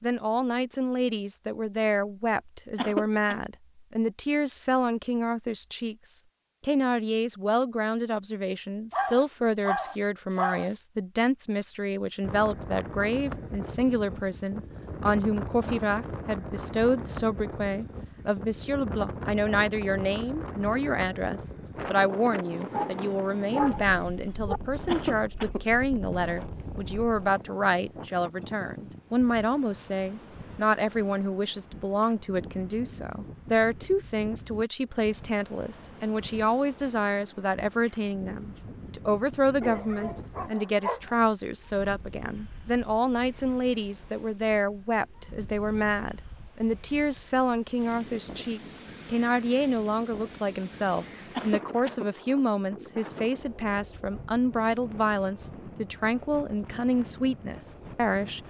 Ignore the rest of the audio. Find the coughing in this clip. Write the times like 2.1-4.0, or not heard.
2.8-3.4, 24.9-25.6, 51.4-52.1.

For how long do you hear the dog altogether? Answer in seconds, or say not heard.
5 s.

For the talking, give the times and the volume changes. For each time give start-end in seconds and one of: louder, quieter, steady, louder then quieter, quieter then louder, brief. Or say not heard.
0.0-58.4 steady.